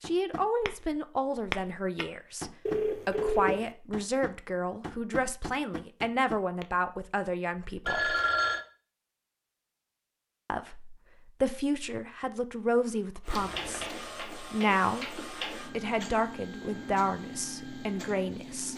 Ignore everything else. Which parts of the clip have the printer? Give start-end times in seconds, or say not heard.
13.2-18.7.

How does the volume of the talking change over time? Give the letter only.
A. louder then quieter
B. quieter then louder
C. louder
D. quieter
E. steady
E.